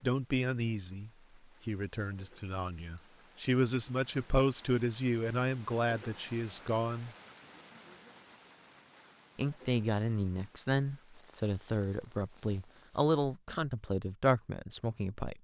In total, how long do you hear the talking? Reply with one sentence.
The talking can be heard for 13 seconds in total.